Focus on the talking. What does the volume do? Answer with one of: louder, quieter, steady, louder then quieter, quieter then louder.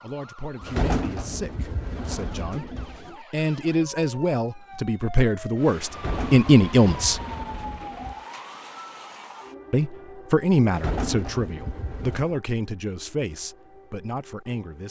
louder then quieter.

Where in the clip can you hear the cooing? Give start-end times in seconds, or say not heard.
0.6-3.1, 5.9-8.2, 10.7-12.3.